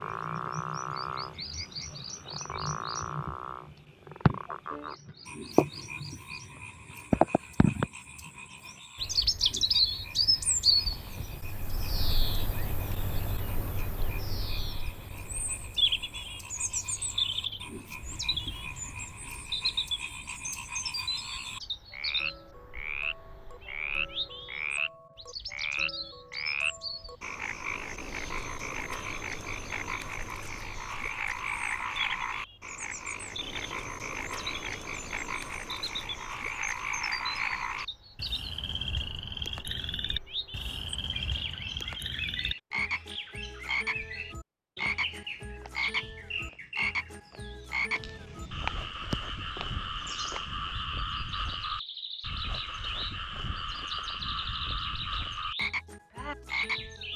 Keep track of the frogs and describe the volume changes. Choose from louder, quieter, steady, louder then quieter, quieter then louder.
louder.